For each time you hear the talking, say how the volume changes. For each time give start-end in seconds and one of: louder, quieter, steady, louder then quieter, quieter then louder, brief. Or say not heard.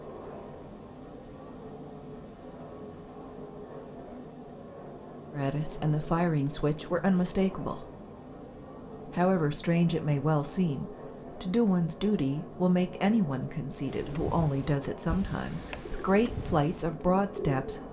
5.3-7.8 brief
9.1-17.8 steady.